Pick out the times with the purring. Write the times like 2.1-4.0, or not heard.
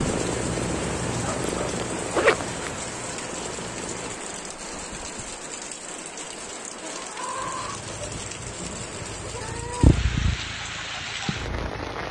0.0-4.2, 7.5-12.0.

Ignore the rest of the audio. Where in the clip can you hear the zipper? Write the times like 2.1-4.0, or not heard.
2.1-2.8.